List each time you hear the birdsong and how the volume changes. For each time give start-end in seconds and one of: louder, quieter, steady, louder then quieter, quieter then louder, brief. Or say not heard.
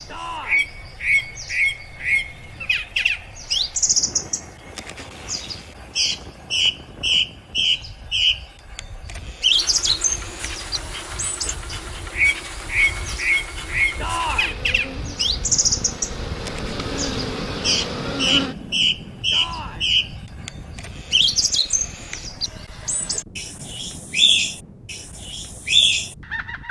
0.0-26.6 steady.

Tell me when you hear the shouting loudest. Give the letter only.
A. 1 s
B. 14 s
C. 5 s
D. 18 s
B.